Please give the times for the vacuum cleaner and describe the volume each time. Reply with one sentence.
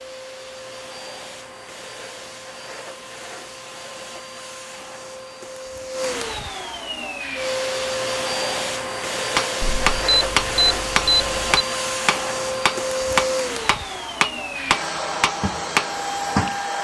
The vacuum cleaner can be heard from 0.0 to 16.8 s, getting louder.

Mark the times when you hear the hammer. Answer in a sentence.
You can hear the hammer from 9.3 to 16.6 s.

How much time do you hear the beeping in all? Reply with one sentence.
The beeping can be heard for 2 seconds in total.